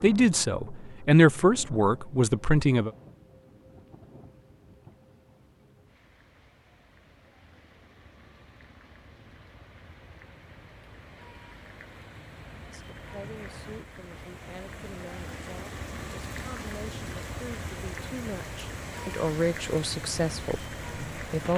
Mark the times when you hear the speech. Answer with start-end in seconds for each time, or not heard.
0.0-2.9, 12.6-21.5.